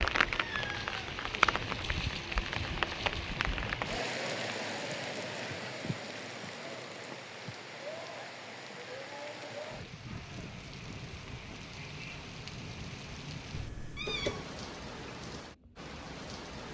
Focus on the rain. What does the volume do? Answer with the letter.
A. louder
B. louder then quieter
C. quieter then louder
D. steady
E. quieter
E.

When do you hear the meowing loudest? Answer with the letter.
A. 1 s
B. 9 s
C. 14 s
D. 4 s
C.